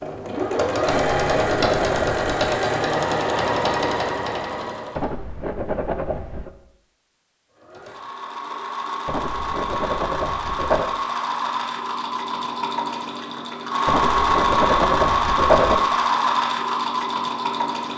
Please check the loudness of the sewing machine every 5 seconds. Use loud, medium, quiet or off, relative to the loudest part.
loud, medium, loud, loud.